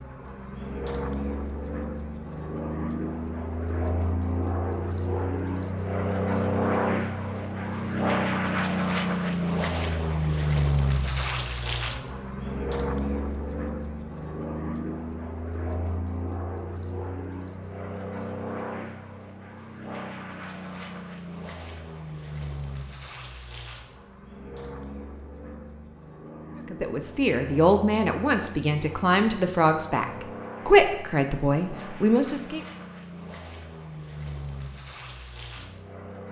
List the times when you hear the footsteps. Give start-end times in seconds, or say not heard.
not heard.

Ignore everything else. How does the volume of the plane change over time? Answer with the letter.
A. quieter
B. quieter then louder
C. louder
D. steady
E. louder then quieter
A.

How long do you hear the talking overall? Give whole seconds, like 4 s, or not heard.
6 s.